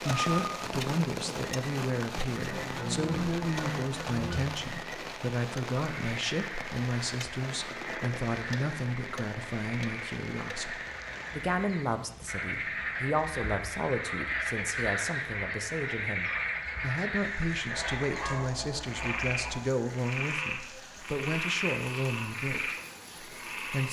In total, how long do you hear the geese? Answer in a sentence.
The geese can be heard for 4 seconds in total.